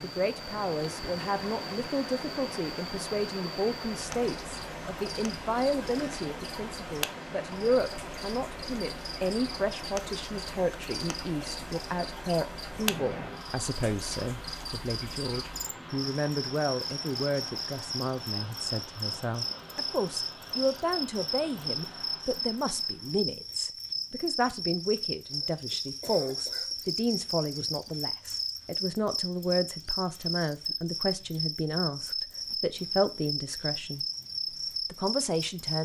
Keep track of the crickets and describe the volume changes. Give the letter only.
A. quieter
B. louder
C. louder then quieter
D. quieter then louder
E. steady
B.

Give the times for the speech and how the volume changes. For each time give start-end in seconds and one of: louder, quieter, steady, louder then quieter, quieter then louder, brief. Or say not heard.
0.0-34.0 steady
34.9-35.8 brief.